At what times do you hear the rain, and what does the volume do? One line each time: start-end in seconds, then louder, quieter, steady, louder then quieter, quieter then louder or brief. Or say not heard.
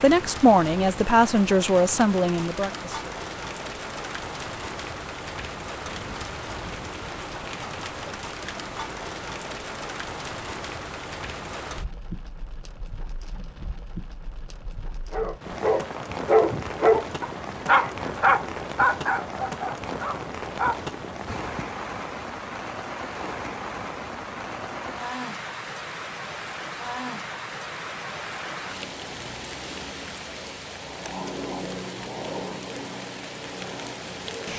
0.0-34.5 steady.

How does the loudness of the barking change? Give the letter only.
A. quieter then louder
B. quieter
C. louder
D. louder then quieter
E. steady
B.